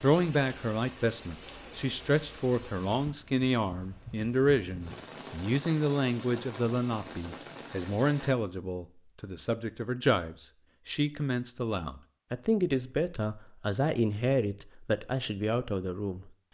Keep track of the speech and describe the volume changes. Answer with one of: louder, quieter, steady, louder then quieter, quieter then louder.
steady.